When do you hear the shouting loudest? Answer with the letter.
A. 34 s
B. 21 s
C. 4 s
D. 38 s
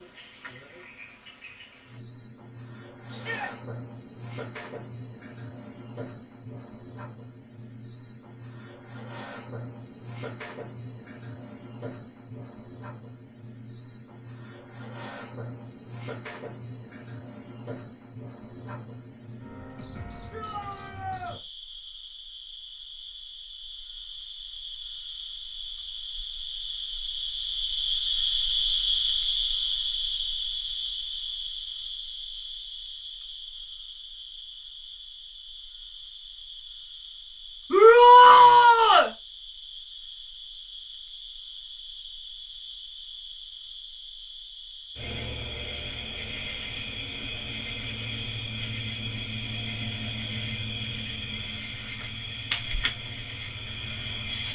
D.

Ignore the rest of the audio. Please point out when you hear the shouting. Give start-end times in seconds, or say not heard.
3.0-3.5, 20.3-21.4, 37.7-39.1.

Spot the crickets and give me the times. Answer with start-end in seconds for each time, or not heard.
0.0-54.5.